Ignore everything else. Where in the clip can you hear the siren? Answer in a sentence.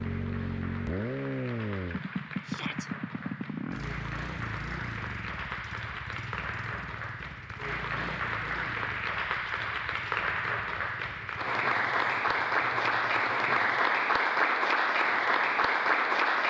The siren can't be heard in this clip.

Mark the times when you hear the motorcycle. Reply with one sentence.
You can hear the motorcycle from 0.0 to 13.8 s.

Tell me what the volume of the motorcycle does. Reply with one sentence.
The volume of the motorcycle goes down.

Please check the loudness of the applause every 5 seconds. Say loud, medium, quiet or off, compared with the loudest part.
quiet, medium, loud, loud.